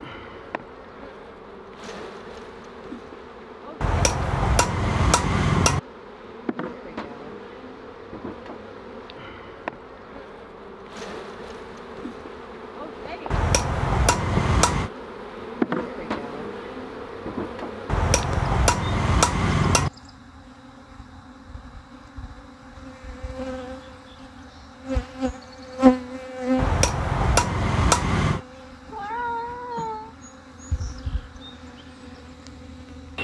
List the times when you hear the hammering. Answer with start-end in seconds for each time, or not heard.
3.8-5.8, 13.3-14.9, 17.9-19.9, 26.6-28.4.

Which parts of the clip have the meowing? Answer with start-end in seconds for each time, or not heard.
28.9-30.1.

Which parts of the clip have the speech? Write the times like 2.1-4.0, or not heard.
not heard.